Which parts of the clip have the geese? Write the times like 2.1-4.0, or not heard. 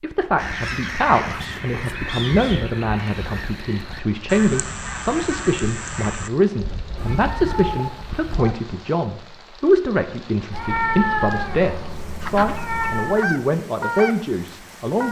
0.3-8.6, 12.2-15.0.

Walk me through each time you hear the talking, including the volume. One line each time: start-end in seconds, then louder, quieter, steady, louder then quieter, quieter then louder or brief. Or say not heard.
0.0-15.0 steady.